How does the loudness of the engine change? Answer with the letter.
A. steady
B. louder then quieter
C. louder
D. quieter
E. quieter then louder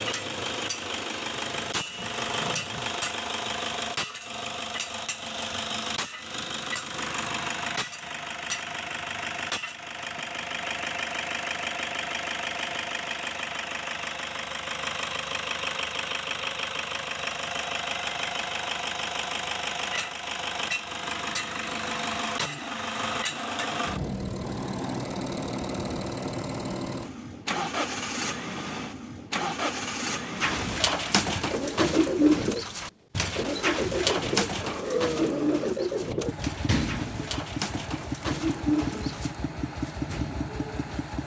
A.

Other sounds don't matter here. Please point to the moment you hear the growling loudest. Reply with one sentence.
The volume of the growling peaks at 35 seconds.